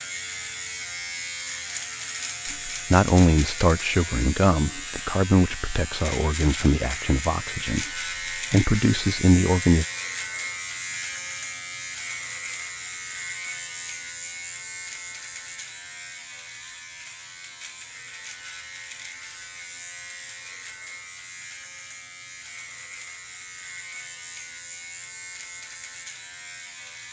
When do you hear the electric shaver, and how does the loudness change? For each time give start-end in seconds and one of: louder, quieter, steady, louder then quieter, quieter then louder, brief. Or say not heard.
0.0-27.0 quieter.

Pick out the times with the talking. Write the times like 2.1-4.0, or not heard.
2.5-7.8, 8.5-9.8.